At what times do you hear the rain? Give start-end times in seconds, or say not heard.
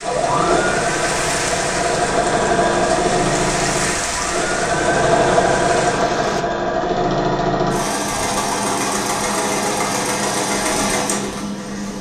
0.0-6.5.